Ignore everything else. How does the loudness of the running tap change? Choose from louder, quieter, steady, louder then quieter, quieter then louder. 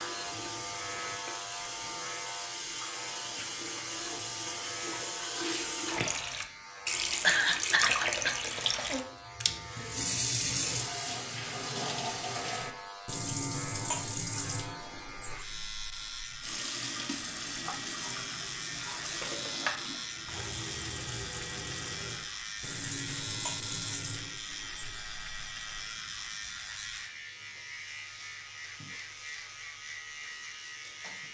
louder then quieter.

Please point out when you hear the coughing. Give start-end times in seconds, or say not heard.
7.2-8.3.